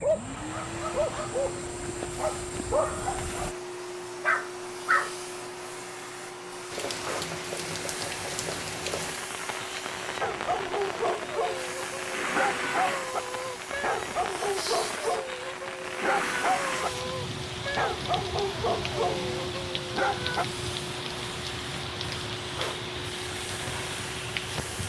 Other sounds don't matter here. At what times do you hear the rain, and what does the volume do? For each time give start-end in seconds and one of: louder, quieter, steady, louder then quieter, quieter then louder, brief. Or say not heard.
6.7-24.8 steady.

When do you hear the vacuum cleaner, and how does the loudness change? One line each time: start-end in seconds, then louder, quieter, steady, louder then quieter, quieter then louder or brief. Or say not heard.
0.0-24.8 steady.